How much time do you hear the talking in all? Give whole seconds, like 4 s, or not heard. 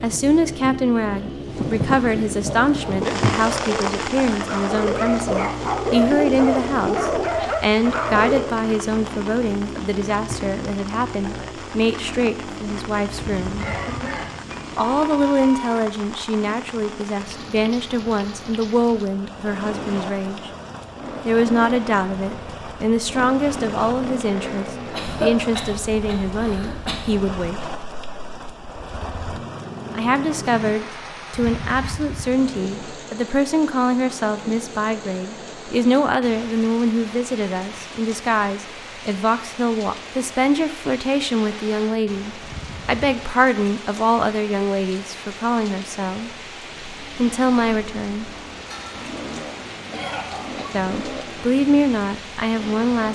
46 s.